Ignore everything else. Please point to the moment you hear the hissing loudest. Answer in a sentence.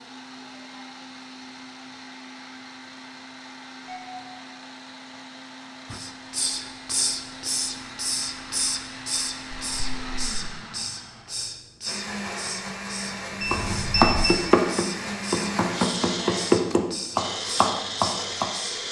The volume of the hissing peaks at 7 seconds.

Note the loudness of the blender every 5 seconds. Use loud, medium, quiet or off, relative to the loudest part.
medium, medium, loud, loud.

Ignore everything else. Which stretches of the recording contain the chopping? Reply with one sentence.
You can hear the chopping from 13.5 to 18.5 s.